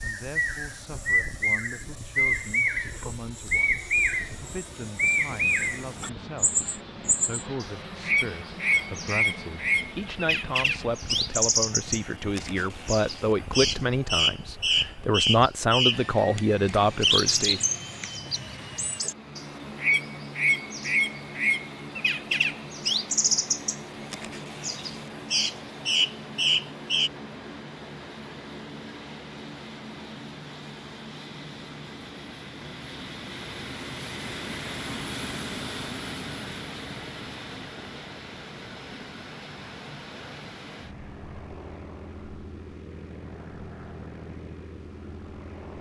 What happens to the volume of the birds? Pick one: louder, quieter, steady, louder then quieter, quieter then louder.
steady.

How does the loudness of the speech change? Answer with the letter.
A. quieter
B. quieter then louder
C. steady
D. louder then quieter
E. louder
E.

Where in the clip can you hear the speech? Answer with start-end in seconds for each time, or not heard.
0.0-17.6.